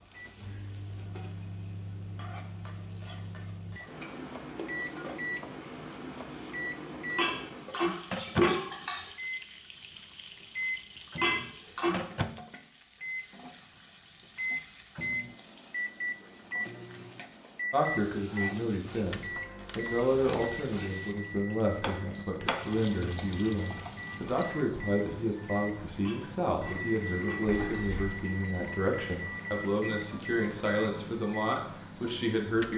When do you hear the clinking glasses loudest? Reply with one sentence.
The loudest moment of the clinking glasses is at 8 seconds.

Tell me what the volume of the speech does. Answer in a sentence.
The loudness of the speech stays about the same.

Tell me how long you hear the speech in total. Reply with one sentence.
You can hear the speech for 15 seconds altogether.